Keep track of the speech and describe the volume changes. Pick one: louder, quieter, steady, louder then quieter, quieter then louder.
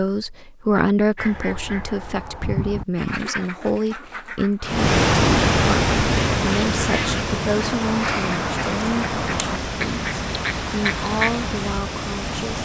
quieter.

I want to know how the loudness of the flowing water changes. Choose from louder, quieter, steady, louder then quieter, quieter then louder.
quieter.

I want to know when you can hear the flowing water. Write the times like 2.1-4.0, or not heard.
4.7-12.6.